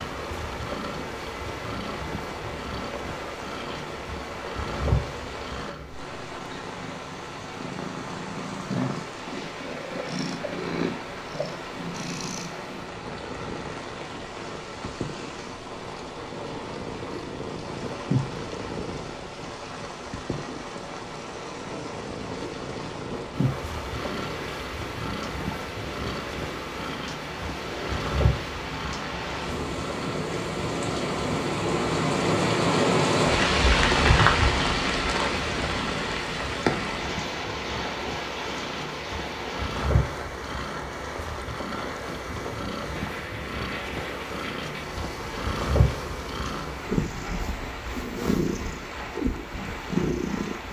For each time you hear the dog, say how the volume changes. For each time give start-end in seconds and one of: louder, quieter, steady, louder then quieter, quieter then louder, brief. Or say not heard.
not heard.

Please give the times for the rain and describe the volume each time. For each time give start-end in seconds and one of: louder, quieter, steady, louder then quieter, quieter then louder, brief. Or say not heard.
0.0-50.6 louder then quieter.